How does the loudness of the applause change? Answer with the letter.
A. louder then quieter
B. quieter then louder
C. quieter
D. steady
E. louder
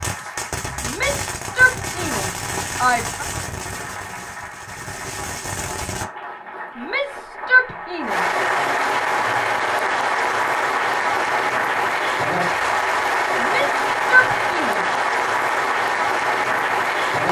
E.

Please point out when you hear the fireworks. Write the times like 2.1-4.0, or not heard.
0.0-6.0.